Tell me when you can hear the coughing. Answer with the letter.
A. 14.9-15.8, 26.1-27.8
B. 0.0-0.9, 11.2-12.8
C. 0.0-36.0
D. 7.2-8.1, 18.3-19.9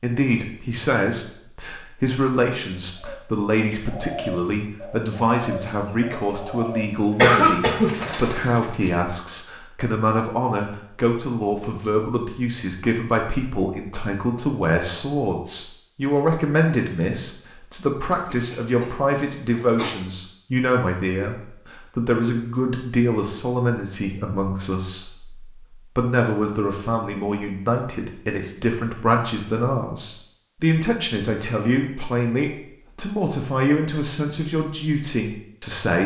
D.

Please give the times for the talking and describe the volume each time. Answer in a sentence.
The talking can be heard from 0.0 to 36.0 s, at a steady volume.